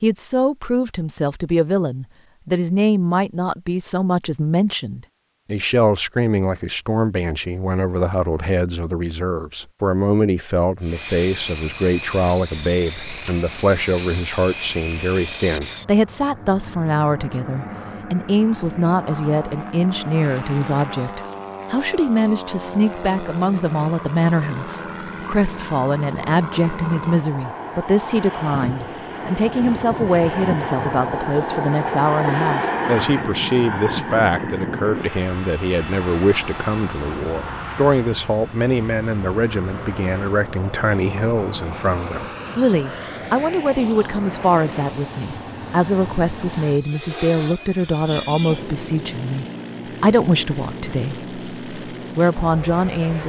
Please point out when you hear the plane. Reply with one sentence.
You can hear the plane from 10.8 to 53.2 s.